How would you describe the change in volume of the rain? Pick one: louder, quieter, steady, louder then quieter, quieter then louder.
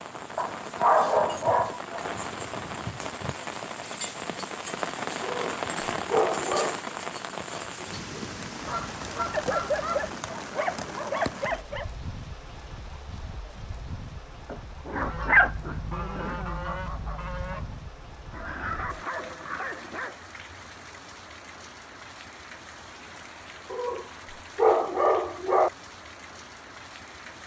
quieter.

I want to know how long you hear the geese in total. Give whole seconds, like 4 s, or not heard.
4 s.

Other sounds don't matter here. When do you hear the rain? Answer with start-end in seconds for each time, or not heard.
0.0-27.4.